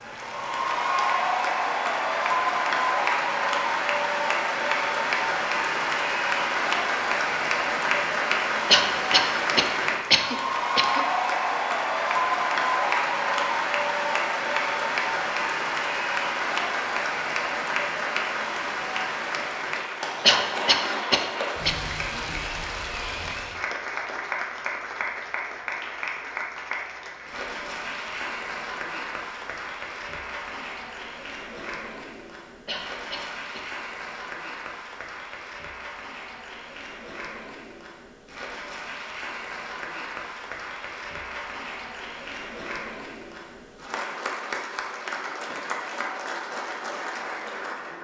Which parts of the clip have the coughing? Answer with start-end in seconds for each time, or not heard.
8.7-11.1, 20.2-21.7, 32.6-33.6.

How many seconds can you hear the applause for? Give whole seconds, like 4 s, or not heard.
48 s.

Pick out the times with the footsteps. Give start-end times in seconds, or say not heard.
not heard.